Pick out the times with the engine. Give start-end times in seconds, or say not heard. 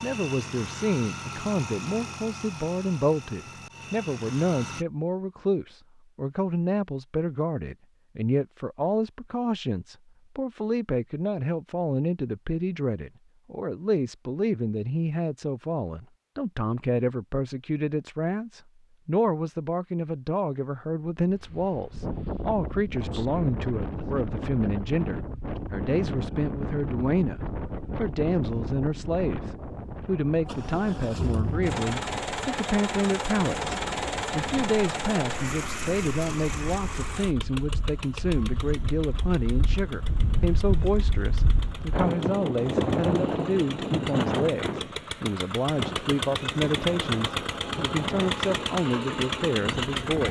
0.0-4.8, 30.4-50.2.